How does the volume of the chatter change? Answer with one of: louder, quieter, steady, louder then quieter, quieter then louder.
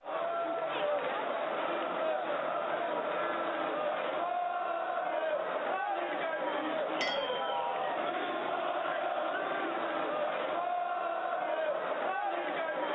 steady.